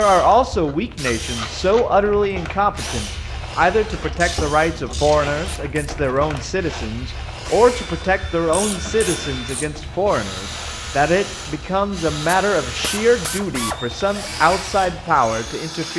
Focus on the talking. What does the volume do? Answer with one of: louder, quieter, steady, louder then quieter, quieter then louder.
steady.